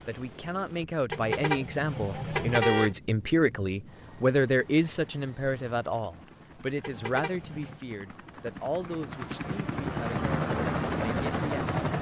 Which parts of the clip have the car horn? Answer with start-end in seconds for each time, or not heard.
1.1-3.0, 6.8-7.8.